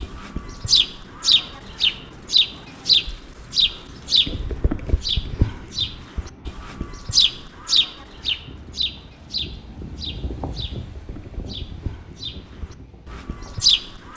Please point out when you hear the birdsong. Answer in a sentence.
You can hear the birdsong from 0.0 to 14.1 s.